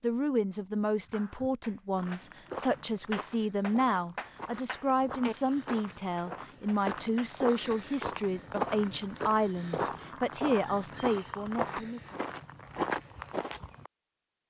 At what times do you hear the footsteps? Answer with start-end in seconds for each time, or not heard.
1.9-13.9.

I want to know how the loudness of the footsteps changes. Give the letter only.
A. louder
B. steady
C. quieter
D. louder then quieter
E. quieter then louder
A.